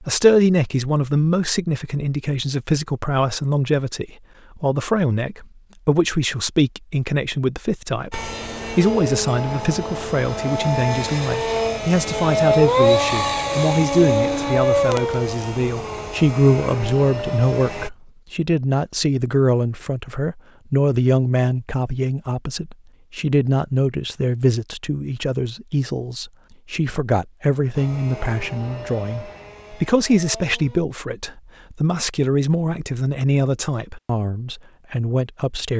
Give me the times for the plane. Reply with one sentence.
You can hear the plane from 8.1 to 17.9 s and from 27.8 to 30.8 s.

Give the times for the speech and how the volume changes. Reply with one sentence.
You can hear the speech from 0.0 to 35.7 s, at a steady volume.